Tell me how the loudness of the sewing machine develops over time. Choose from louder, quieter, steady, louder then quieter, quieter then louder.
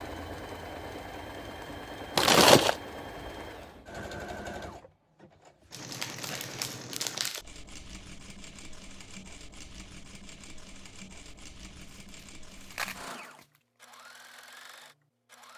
quieter.